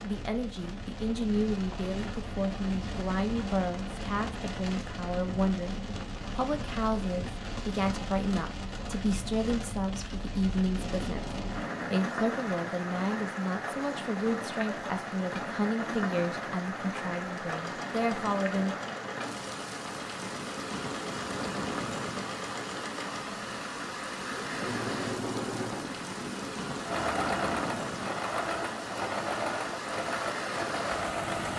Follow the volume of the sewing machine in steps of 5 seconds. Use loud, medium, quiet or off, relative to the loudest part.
off, off, off, medium, medium, loud, loud.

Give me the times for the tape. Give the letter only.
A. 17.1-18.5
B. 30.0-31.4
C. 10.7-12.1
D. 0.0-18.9
C.